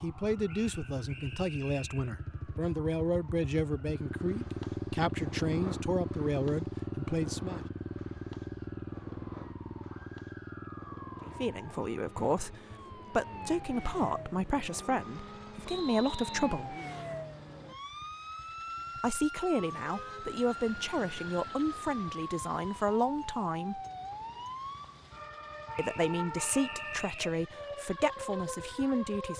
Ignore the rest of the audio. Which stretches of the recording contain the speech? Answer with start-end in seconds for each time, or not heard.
0.0-7.7, 11.2-16.8, 18.9-23.8, 25.8-29.3.